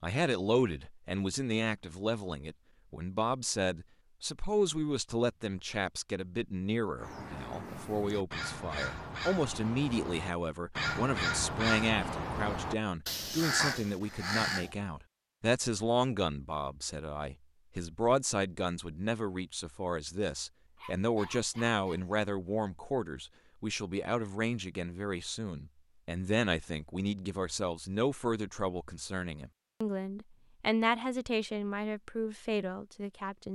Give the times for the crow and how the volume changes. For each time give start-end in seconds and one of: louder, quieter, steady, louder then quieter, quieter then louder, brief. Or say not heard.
7.0-14.8 louder.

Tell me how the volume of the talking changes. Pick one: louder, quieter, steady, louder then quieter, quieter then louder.
steady.